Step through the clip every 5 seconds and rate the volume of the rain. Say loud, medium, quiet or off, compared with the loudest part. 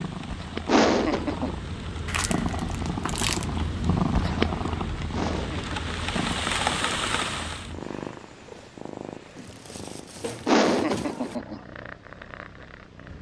quiet, loud, off.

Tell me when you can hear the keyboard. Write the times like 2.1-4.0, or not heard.
not heard.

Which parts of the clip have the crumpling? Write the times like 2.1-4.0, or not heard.
2.0-3.5, 9.3-11.3.